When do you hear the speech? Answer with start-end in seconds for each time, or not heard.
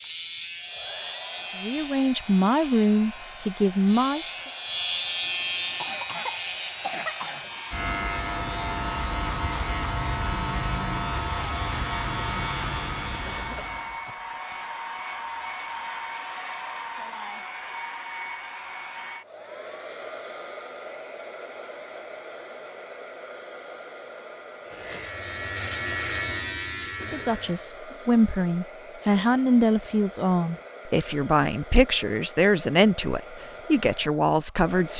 1.6-4.5, 27.0-34.9.